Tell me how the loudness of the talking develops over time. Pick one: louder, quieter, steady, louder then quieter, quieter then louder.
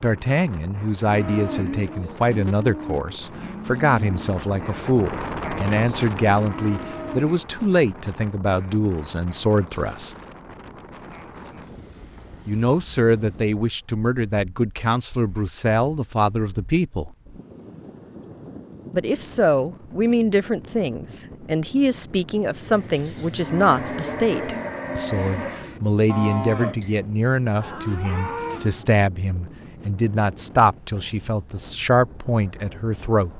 steady.